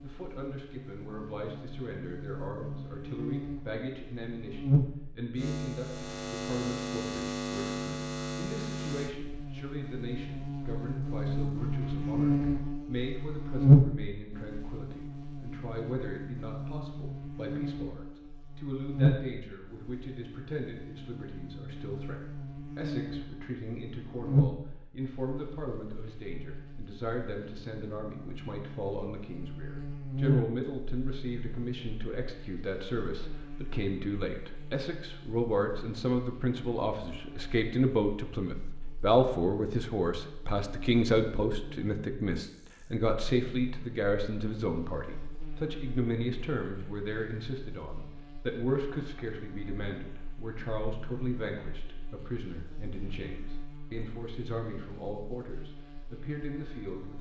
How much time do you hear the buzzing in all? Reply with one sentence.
The buzzing can be heard for 57 seconds in total.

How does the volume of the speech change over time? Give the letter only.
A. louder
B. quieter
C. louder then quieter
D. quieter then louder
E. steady
C.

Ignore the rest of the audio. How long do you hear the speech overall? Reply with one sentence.
The speech can be heard for 57 seconds in total.